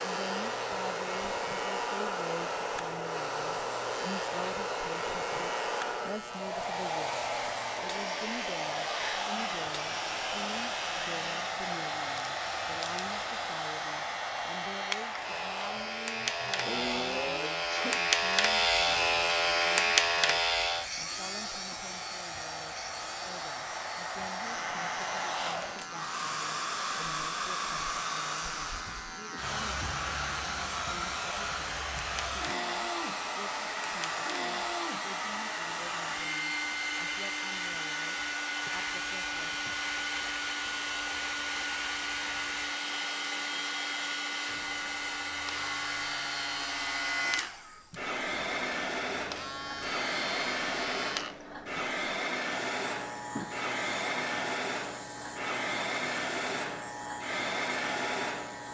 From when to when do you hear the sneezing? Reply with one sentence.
The sneezing can be heard from 15.8 to 18.1 s and from 38.6 to 39.9 s.